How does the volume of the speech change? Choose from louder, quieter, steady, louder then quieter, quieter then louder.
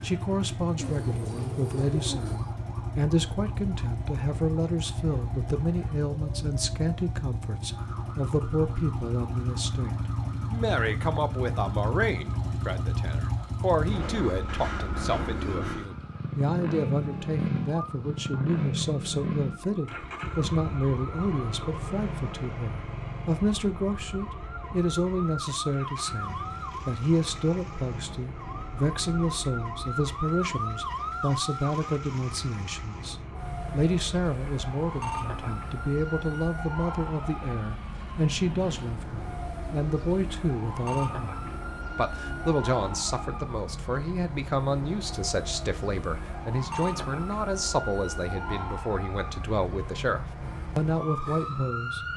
steady.